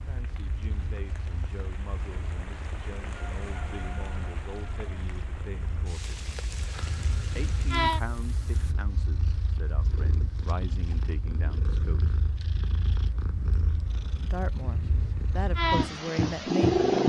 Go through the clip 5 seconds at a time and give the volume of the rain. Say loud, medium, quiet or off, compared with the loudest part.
loud, loud, off, off.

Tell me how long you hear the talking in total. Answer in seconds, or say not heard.
14 s.